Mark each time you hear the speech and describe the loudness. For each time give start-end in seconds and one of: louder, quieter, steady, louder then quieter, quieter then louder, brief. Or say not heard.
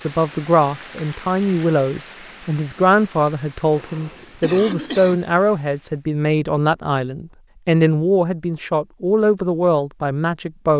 0.0-10.7 steady.